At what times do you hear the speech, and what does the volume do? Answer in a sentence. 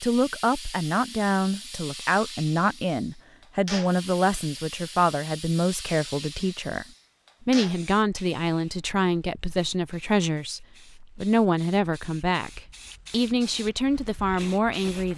The speech can be heard from 0.0 to 15.1 s, at a steady volume.